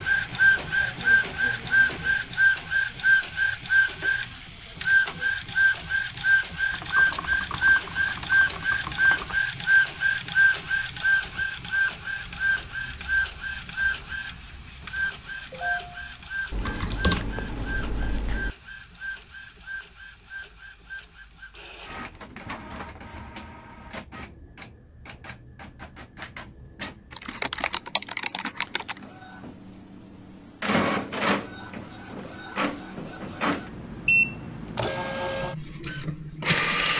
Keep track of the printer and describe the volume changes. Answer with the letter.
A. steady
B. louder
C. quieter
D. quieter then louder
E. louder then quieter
D.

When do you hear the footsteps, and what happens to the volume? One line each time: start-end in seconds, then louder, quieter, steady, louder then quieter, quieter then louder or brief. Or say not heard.
not heard.